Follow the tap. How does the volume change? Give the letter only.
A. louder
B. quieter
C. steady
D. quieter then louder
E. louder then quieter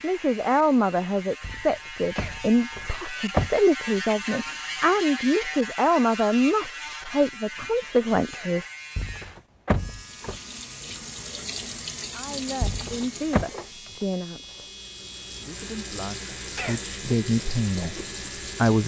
D.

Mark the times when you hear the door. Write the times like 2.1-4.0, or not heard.
1.4-3.5, 8.9-10.4, 12.6-13.4.